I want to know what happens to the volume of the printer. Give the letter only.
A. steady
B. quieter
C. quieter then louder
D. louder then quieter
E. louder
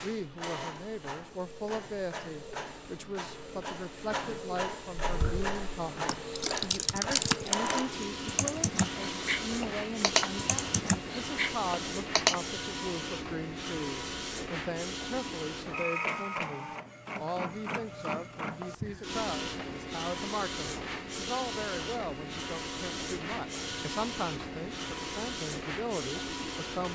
A.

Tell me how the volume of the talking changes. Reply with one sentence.
The loudness of the talking stays about the same.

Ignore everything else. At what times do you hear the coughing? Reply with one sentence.
The coughing can't be heard in this clip.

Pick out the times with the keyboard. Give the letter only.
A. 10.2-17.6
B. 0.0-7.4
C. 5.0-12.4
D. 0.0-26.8
C.